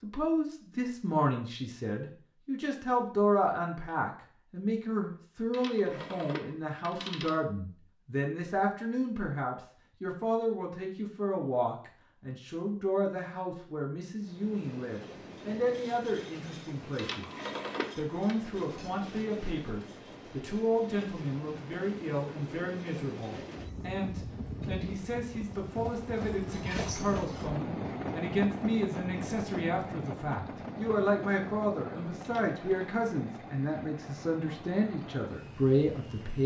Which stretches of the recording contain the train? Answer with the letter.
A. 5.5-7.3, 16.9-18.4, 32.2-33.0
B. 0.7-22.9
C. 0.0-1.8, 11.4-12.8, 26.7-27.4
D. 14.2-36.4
D.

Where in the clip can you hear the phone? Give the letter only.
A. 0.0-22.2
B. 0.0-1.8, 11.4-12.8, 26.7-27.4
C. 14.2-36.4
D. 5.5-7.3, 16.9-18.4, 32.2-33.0
D.